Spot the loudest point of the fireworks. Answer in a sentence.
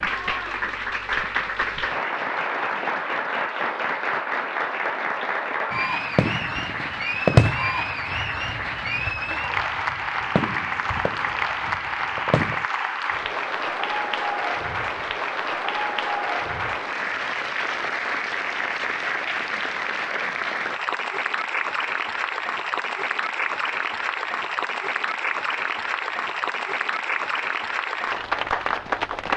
The loudest moment of the fireworks is at 7 seconds.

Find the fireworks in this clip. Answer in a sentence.
The fireworks can be heard from 5.7 to 12.7 s.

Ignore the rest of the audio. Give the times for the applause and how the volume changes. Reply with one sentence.
The applause can be heard from 0.0 to 29.3 s, at a steady volume.